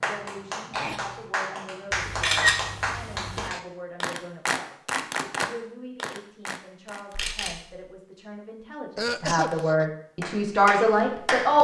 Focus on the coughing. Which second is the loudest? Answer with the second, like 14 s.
9 s.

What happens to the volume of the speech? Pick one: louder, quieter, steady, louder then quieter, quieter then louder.
louder.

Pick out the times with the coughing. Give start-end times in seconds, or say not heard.
0.7-1.2, 8.9-9.8.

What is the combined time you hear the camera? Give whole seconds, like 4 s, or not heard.
2 s.